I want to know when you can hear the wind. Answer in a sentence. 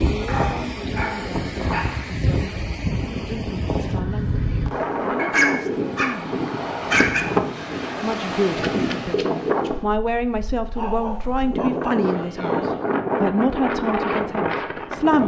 The wind can be heard from 0.0 to 15.2 s.